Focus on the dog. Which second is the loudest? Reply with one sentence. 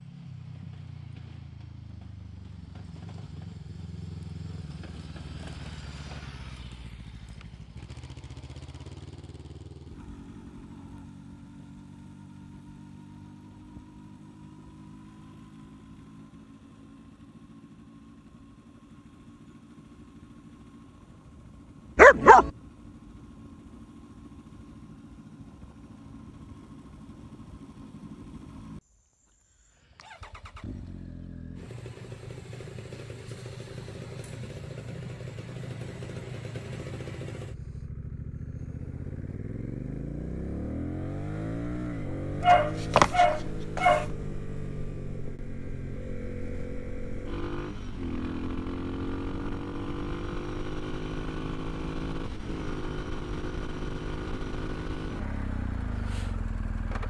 The volume of the dog peaks at 22 seconds.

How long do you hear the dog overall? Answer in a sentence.
The dog can be heard for 2 seconds in total.